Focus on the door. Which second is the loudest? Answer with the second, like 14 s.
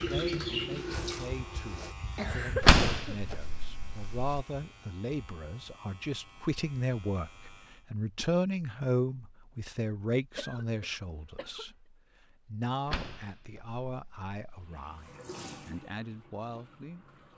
3 s.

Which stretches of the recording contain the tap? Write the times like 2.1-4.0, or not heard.
0.0-1.9, 14.6-17.3.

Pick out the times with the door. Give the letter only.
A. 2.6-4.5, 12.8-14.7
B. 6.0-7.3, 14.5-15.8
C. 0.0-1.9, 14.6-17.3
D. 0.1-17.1
A.